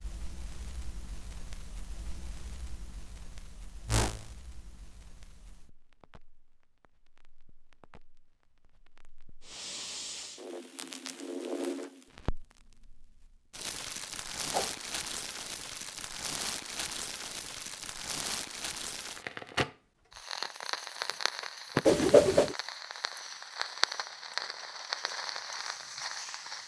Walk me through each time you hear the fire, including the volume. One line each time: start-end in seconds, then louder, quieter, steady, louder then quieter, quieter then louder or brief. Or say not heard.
0.0-26.6 louder.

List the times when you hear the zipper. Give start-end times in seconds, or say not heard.
not heard.